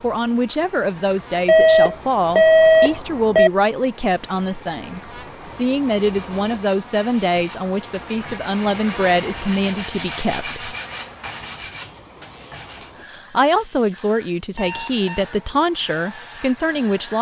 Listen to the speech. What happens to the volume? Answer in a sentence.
The volume of the speech stays about the same.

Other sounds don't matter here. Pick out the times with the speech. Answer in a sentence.
You can hear the speech from 0.0 to 10.8 s and from 13.1 to 17.1 s.